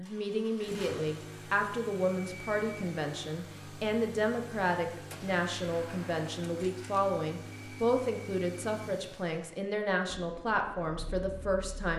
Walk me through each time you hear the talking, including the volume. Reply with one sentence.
You can hear the talking from 0.0 to 11.9 s, at a steady volume.